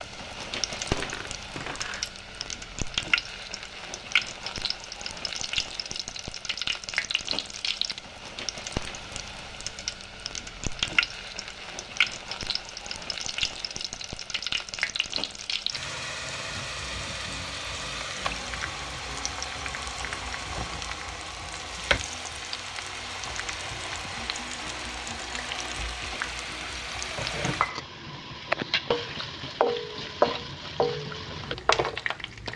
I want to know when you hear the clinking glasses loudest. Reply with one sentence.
The loudest moment of the clinking glasses is at 1 second.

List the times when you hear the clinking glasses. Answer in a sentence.
The clinking glasses can be heard from 0.8 to 2.5 s.